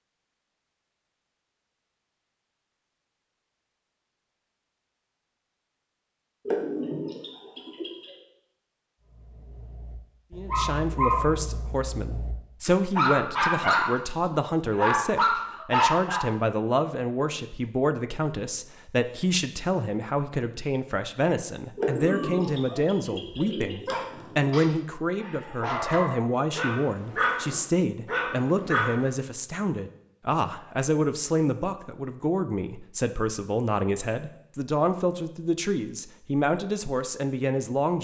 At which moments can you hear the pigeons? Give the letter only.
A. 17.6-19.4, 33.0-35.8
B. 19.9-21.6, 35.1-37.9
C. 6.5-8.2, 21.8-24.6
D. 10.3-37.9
C.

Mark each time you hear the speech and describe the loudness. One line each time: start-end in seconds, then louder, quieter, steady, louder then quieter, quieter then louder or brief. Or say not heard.
10.3-37.9 steady.